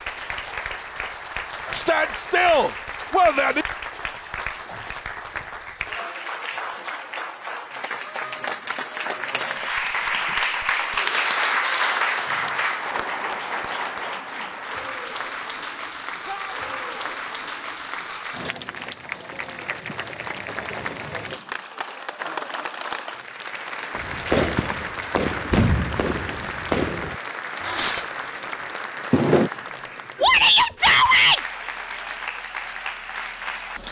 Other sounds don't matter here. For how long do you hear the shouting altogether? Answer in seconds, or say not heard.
4 s.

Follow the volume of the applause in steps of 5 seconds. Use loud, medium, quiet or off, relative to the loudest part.
medium, medium, loud, medium, medium, medium, medium.